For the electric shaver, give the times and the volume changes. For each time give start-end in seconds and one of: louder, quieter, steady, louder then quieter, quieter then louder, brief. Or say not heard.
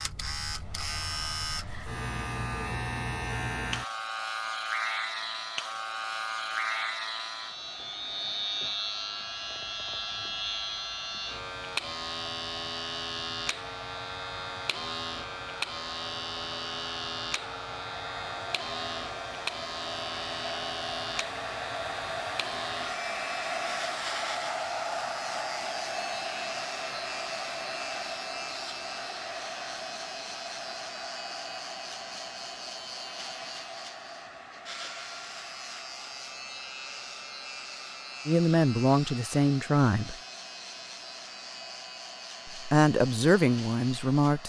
0.0-44.4 quieter.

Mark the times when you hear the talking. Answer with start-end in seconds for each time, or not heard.
38.2-40.1, 42.5-44.4.